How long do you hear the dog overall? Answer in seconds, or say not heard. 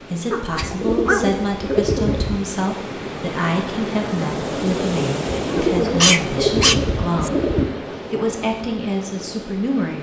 3 s.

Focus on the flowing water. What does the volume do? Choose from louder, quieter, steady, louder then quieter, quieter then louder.
louder then quieter.